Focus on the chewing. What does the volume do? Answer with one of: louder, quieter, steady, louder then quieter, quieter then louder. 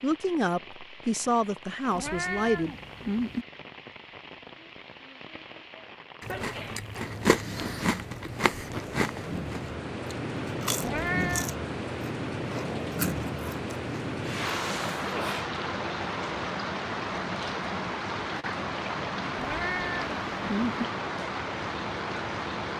quieter.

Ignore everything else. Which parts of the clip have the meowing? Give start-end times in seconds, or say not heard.
1.9-3.5, 10.8-11.5, 19.4-20.9.